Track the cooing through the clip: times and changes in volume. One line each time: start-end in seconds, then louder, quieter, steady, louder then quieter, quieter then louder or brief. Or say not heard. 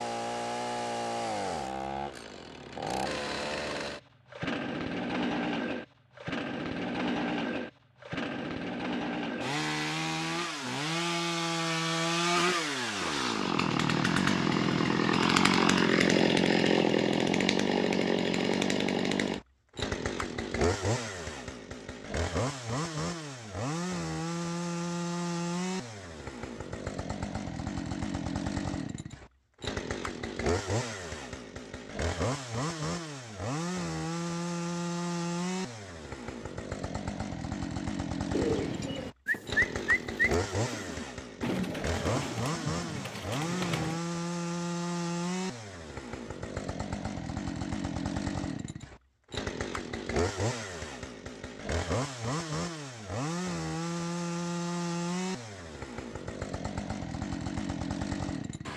38.3-44.0 quieter.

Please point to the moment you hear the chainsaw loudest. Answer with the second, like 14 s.
16 s.